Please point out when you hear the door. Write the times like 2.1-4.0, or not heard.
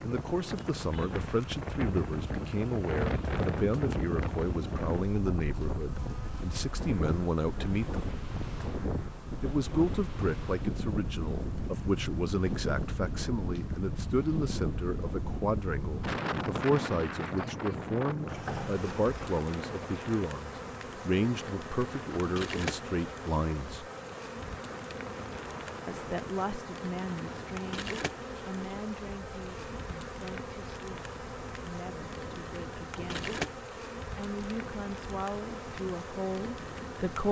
18.2-19.4.